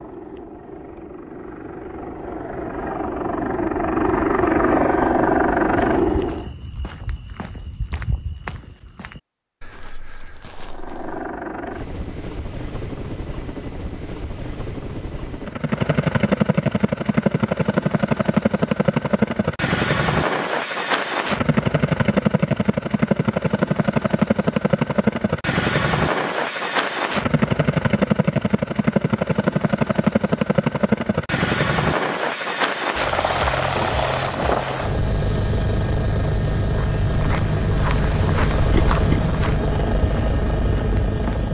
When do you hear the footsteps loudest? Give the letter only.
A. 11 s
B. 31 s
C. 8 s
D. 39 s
D.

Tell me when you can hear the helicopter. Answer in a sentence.
You can hear the helicopter from 0.0 to 6.5 s and from 10.7 to 41.5 s.